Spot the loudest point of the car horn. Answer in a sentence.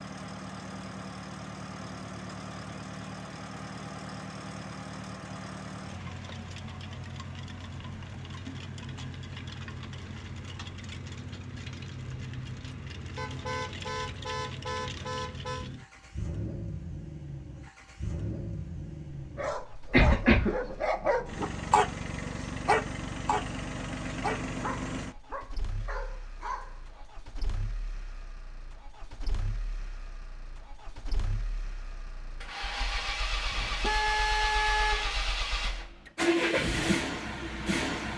The volume of the car horn peaks at 35 seconds.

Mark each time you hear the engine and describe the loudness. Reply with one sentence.
You can hear the engine from 0.0 to 38.1 s, getting louder.